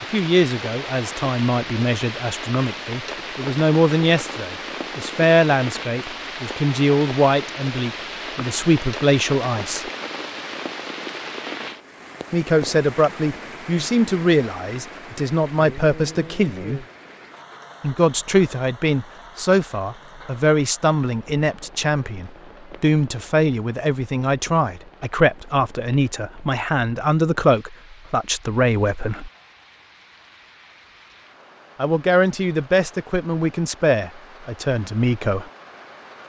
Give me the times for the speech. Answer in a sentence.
You can hear the speech from 0.0 to 9.8 s, from 12.3 to 16.9 s, from 17.8 to 29.3 s and from 31.8 to 35.5 s.